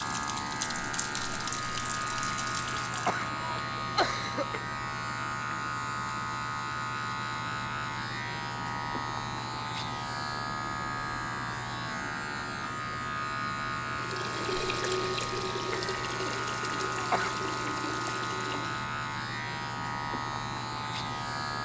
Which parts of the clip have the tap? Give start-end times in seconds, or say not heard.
0.0-3.3, 13.9-18.9.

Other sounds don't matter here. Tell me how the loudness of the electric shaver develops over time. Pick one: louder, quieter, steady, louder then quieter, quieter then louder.
steady.